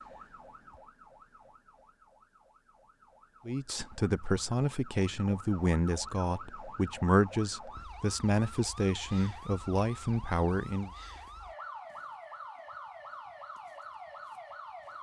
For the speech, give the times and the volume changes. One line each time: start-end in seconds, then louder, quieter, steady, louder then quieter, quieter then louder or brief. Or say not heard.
3.5-10.9 steady.